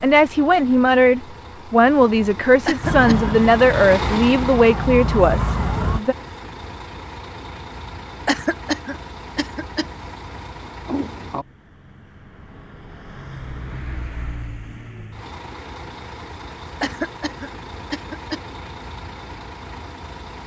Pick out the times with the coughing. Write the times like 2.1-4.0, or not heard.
2.6-3.4, 8.2-9.8, 16.8-18.4.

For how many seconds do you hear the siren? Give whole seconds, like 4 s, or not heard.
3 s.